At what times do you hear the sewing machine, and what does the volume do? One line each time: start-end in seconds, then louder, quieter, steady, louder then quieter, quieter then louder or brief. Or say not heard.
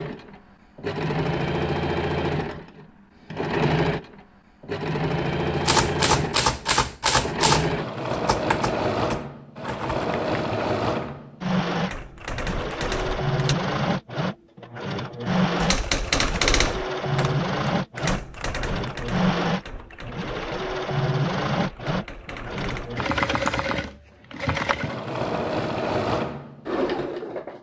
0.0-27.5 steady.